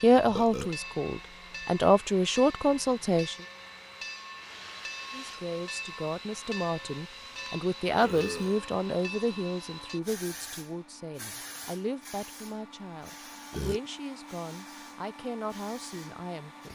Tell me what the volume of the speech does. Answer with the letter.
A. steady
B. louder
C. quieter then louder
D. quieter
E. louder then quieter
D.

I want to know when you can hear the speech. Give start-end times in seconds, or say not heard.
0.0-3.4, 5.1-16.7.